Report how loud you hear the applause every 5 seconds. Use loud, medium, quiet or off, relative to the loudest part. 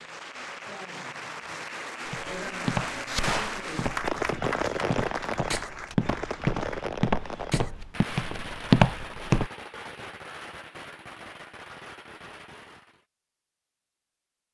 loud, loud, off.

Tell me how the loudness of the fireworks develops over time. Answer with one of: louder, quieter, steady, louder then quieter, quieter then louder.
quieter.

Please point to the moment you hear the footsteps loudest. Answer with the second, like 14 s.
9 s.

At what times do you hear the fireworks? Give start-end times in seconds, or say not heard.
2.7-13.1.